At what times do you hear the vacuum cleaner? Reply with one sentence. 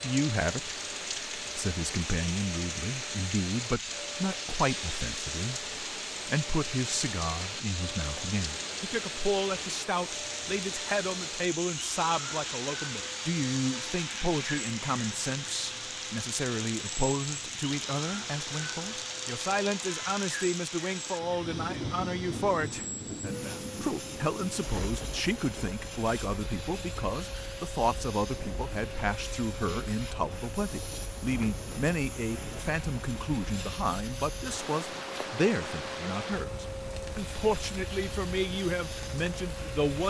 The vacuum cleaner can be heard from 0.0 to 40.0 s.